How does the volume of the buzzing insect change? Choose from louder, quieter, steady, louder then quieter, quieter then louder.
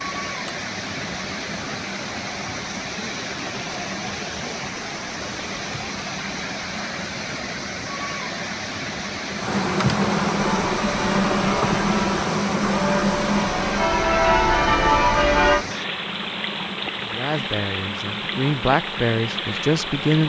louder then quieter.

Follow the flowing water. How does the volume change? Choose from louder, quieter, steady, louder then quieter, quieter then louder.
steady.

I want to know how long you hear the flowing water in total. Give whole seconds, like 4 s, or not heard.
20 s.